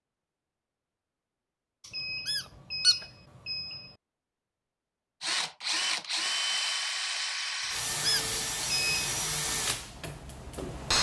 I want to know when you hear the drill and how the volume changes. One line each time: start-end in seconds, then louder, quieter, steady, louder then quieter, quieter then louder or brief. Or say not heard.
5.2-10.9 quieter.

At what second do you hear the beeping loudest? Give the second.
9 s.